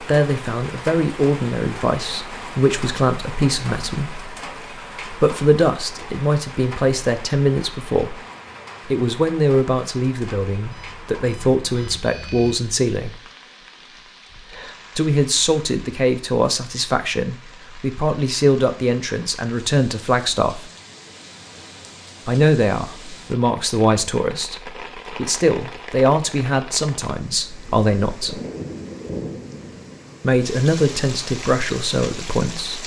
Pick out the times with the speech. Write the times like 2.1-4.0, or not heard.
0.0-4.3, 5.1-8.2, 8.8-13.2, 14.9-20.6, 22.2-28.4, 30.2-32.8.